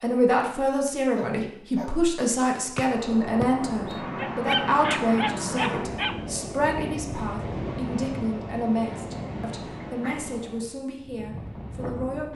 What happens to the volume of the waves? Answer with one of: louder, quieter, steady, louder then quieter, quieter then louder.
quieter.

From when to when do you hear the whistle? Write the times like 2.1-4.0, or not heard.
2.8-4.0.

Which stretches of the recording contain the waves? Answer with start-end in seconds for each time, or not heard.
2.9-12.3.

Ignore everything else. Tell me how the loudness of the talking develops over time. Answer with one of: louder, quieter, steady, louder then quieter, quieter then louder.
quieter.